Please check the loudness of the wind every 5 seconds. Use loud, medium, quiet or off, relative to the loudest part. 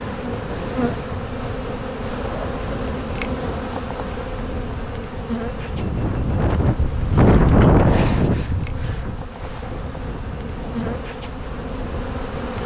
quiet, loud, quiet.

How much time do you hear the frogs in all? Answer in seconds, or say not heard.
not heard.